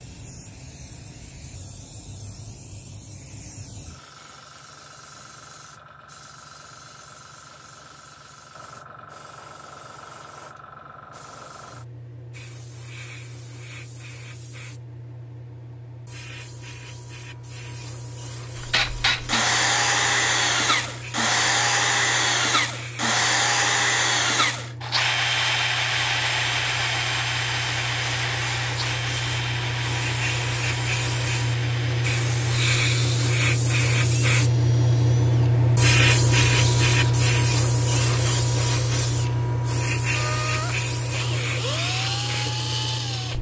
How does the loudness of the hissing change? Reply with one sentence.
The volume of the hissing goes up.